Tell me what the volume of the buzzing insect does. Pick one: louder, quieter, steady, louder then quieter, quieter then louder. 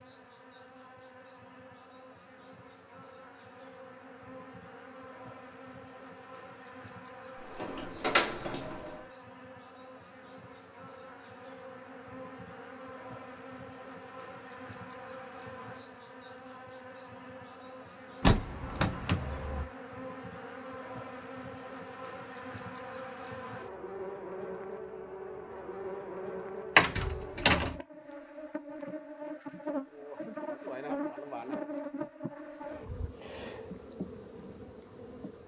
louder.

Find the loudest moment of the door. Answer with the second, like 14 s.
27 s.